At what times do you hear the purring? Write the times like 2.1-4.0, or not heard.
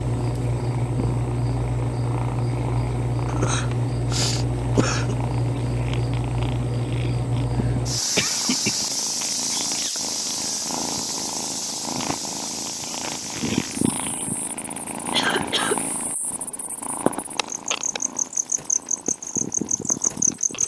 0.0-20.6.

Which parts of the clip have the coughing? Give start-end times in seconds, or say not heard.
3.2-5.2, 7.5-8.9, 15.1-15.8.